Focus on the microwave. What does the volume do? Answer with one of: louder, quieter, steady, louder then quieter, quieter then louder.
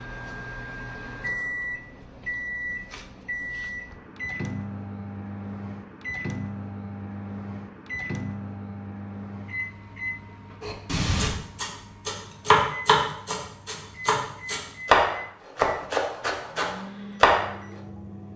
quieter.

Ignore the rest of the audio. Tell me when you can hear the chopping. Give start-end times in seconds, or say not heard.
10.6-17.5.